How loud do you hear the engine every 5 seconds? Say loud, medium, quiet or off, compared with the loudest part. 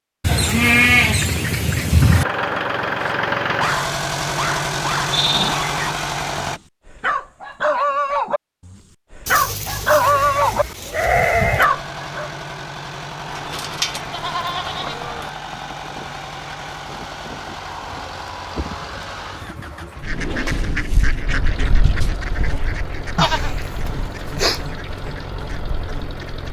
loud, loud, medium, medium, medium, medium.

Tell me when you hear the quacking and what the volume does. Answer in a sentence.
The quacking can be heard from 20.0 to 26.4 s, getting quieter.